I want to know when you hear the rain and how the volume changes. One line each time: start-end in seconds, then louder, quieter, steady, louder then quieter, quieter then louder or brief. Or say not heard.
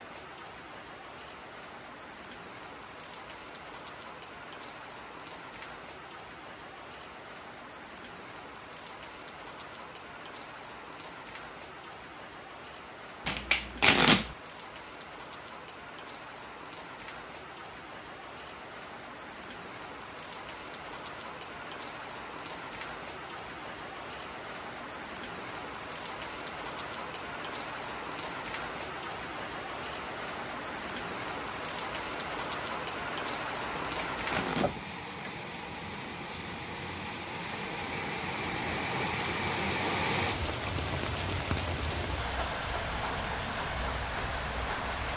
0.0-45.1 louder.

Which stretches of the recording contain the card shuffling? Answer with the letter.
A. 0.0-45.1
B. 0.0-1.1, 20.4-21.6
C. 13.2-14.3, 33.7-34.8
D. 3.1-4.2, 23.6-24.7
C.